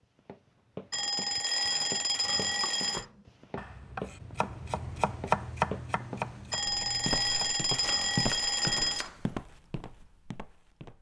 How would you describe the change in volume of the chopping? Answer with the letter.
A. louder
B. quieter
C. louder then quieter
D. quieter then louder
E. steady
C.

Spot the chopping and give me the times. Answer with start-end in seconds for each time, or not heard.
2.5-9.4.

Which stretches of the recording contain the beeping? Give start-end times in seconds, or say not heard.
0.9-3.0, 6.5-9.1.